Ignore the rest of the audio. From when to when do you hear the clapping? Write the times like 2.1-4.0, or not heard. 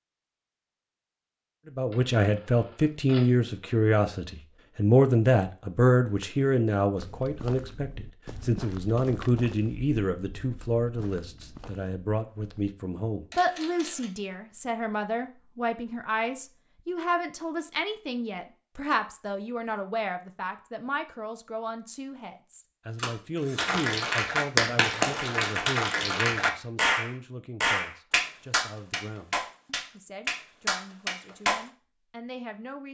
23.6-31.6.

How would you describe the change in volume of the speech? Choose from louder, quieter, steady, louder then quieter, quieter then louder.
quieter.